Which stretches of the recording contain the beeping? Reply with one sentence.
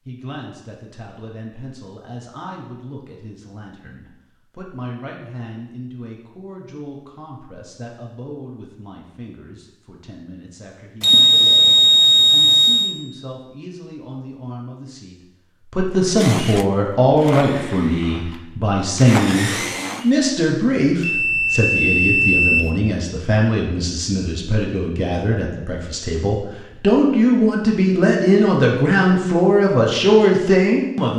You can hear the beeping from 11.0 to 12.9 s and from 21.0 to 22.7 s.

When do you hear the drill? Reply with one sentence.
The drill can be heard from 16.1 to 20.1 s.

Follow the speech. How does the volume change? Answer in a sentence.
The volume of the speech goes up.